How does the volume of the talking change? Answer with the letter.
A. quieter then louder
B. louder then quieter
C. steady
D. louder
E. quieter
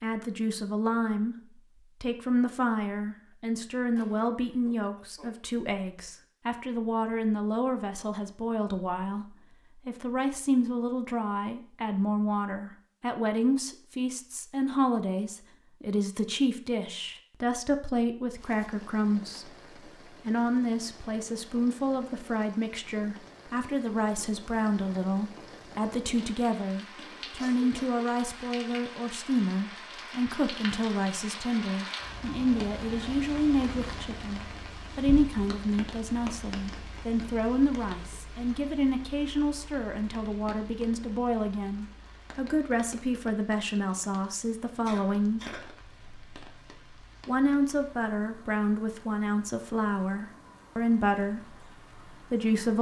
C.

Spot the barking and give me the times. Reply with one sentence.
You can't hear the barking here.